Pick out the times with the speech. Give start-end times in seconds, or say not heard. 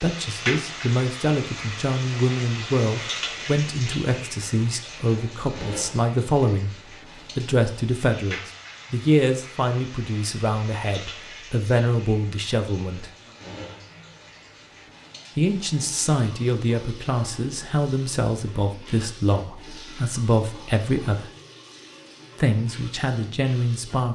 0.0-6.8, 7.3-13.1, 15.3-21.3, 22.4-24.0.